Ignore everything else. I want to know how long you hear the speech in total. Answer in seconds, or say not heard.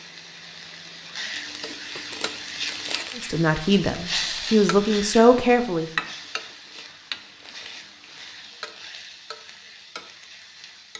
3 s.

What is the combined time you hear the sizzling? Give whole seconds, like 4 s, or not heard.
11 s.